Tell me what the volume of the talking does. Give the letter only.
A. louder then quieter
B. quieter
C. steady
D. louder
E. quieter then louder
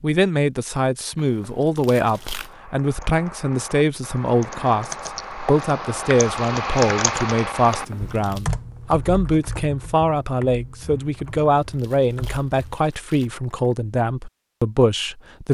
C.